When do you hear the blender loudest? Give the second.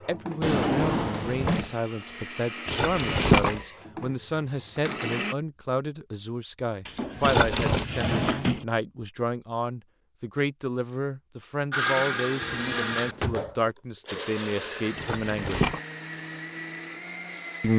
12 s.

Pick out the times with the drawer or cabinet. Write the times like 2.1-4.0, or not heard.
0.4-1.8, 6.8-8.7, 12.4-13.5.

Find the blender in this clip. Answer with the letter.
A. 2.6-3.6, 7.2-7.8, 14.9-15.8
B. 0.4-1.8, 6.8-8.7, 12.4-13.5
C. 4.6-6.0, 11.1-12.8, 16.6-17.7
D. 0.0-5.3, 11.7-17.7
D.